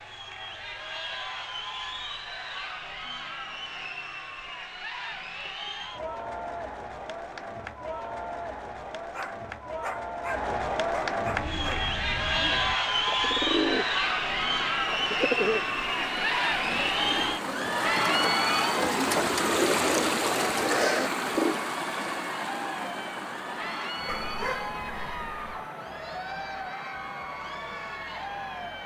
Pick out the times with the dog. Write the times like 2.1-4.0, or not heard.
9.1-11.9, 24.1-25.6.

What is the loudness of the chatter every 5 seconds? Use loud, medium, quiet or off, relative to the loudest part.
medium, medium, loud, loud, medium, medium.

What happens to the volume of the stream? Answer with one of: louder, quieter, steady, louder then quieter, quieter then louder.
louder then quieter.